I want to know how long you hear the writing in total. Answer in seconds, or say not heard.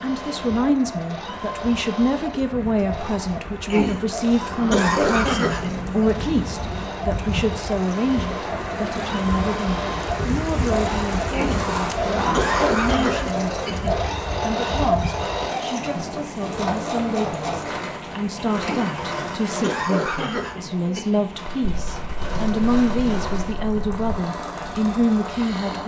6 s.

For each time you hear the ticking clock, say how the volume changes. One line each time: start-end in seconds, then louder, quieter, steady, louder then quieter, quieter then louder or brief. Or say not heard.
not heard.